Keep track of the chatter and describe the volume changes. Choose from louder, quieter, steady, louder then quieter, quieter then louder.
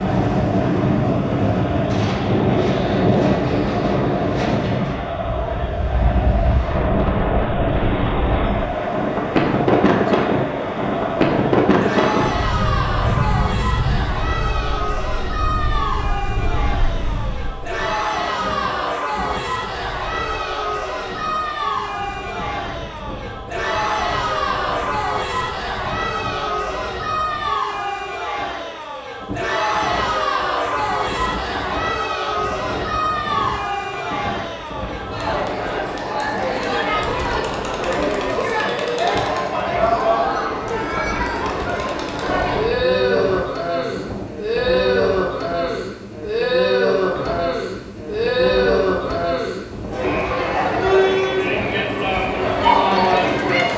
louder.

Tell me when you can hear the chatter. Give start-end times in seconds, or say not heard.
0.0-53.7.